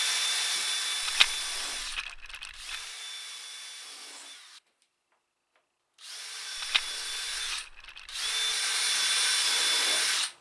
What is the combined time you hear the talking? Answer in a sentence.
The talking can't be heard in this clip.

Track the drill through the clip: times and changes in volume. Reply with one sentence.
You can hear the drill from 0.0 to 10.3 s, getting quieter then louder.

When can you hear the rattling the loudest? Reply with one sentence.
The loudest moment of the rattling is at 1 second.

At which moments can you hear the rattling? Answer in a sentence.
The rattling can be heard from 1.0 to 2.9 s and from 6.5 to 8.2 s.